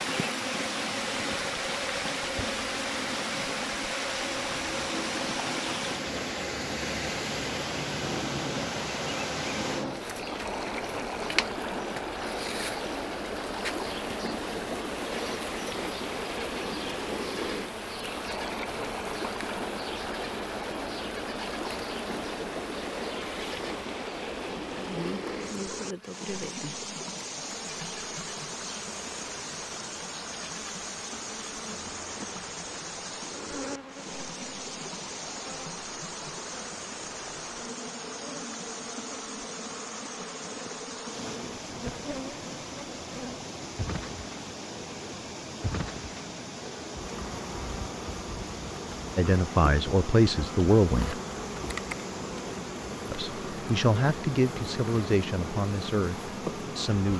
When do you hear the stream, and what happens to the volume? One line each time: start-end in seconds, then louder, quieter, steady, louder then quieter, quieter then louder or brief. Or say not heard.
0.0-57.1 quieter.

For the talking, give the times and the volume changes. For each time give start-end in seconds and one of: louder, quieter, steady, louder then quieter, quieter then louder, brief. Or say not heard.
49.1-51.2 brief
53.1-57.1 quieter.